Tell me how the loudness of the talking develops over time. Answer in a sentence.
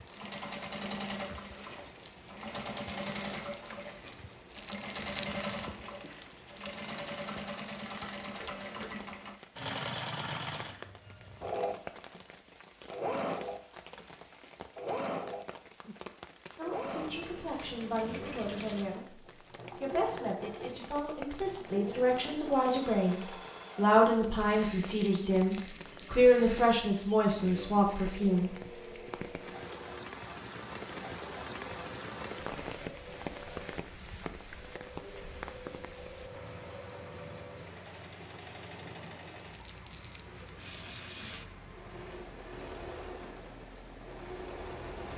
The loudness of the talking goes up.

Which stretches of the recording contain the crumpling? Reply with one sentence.
The crumpling can be heard from 4.5 to 5.3 s, from 24.4 to 26.1 s and from 39.5 to 40.2 s.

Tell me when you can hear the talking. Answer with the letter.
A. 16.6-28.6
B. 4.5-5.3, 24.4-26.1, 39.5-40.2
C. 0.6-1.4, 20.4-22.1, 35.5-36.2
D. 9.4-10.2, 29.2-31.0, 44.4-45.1
A.